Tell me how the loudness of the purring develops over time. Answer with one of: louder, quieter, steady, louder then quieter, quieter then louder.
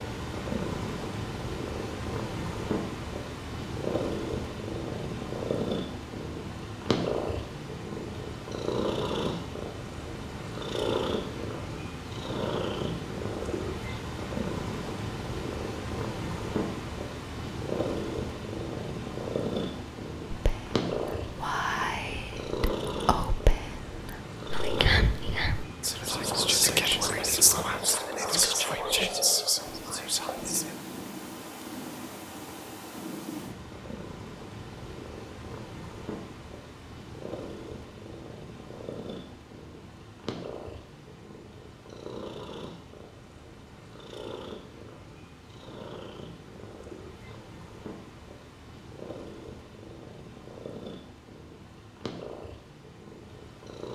quieter.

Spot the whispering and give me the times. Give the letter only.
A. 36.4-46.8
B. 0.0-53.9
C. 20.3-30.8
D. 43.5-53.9
C.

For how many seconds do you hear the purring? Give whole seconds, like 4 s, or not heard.
54 s.